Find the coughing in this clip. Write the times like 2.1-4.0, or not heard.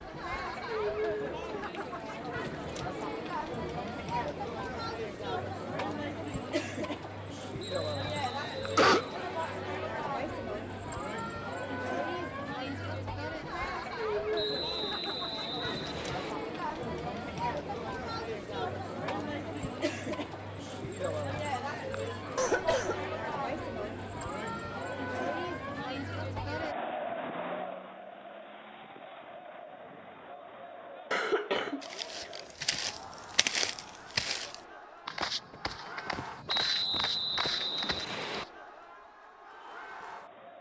8.2-9.1, 22.4-23.0, 31.1-32.8.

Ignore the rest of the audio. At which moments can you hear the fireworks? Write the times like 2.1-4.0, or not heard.
not heard.